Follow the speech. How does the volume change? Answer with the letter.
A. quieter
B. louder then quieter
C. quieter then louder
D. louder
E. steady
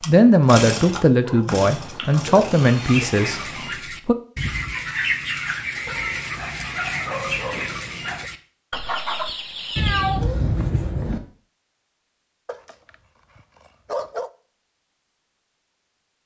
A.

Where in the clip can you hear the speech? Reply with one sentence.
The speech can be heard from 0.1 to 4.2 s.